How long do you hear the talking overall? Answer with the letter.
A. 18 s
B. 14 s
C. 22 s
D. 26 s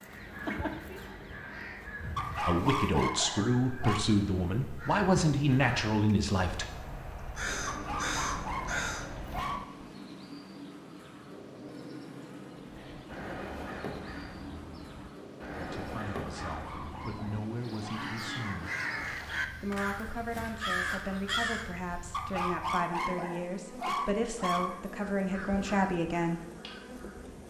B.